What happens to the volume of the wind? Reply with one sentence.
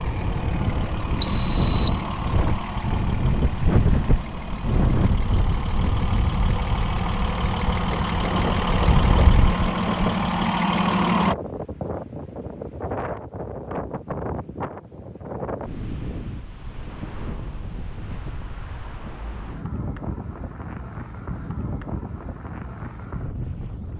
The volume of the wind goes down.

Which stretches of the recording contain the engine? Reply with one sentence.
The engine can be heard from 0.0 to 11.3 s.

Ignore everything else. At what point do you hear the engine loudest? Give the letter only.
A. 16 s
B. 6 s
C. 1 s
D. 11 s
D.